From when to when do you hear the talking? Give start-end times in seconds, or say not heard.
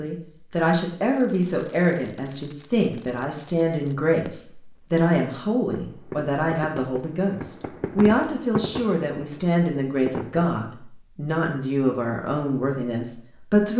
0.0-13.7.